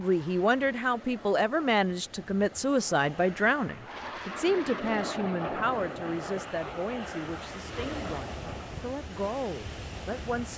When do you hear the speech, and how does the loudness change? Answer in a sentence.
The speech can be heard from 0.0 to 10.5 s, getting quieter.